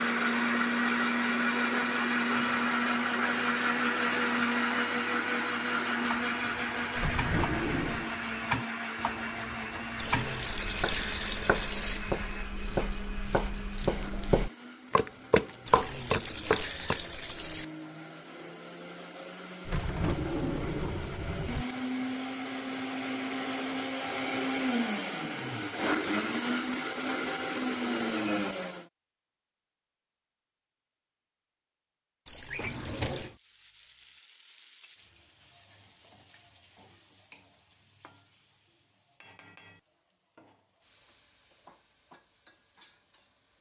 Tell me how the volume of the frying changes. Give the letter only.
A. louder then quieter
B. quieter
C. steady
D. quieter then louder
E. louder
B.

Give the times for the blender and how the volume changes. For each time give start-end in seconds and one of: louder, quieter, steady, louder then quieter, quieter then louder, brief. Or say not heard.
0.0-28.9 quieter then louder.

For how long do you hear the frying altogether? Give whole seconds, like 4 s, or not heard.
10 s.